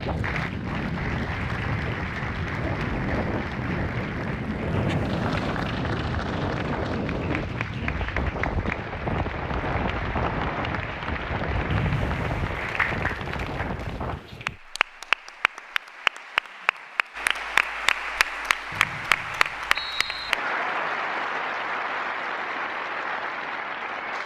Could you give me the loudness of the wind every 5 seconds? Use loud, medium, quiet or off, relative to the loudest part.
loud, loud, loud, off, off.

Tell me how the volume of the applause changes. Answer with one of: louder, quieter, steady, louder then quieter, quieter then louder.
louder.